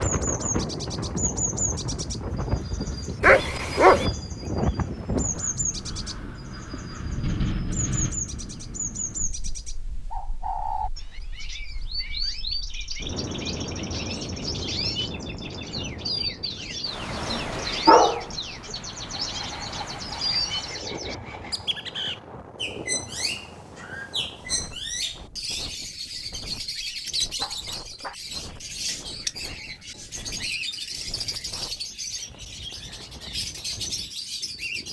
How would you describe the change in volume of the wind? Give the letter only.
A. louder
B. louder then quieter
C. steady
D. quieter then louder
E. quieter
E.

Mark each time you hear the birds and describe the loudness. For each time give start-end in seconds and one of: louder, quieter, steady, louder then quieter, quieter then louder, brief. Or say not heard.
0.0-34.8 steady.